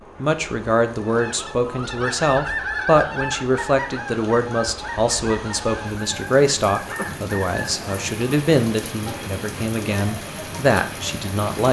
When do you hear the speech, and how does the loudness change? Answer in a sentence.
You can hear the speech from 0.2 to 11.6 s, at a steady volume.